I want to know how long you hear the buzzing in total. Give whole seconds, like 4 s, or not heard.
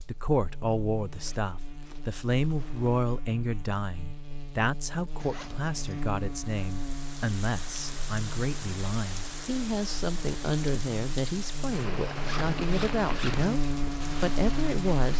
15 s.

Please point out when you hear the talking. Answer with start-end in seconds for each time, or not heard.
0.1-13.6, 14.2-15.1.